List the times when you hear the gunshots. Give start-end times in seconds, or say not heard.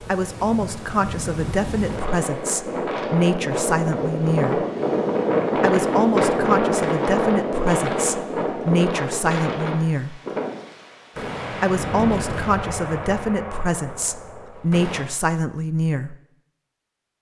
11.2-15.1.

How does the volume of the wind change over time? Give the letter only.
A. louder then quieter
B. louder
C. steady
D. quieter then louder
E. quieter
A.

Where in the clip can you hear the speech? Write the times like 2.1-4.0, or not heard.
0.1-4.7, 5.5-10.2, 11.6-16.1.